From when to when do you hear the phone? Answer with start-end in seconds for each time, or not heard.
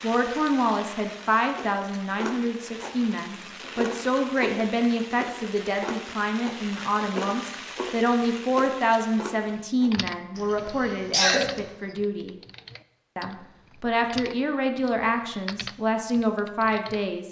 not heard.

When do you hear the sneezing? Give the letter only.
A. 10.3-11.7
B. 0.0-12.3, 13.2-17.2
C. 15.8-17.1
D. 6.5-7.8
A.